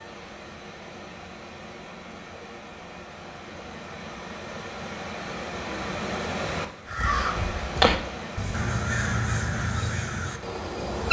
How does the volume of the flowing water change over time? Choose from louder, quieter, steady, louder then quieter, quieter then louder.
louder then quieter.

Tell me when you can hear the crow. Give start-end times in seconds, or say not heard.
6.8-11.0.